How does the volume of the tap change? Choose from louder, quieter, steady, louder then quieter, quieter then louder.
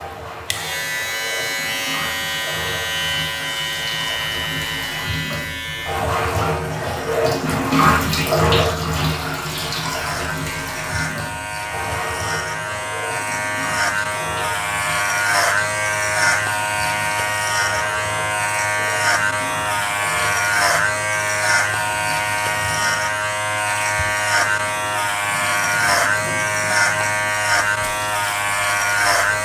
louder then quieter.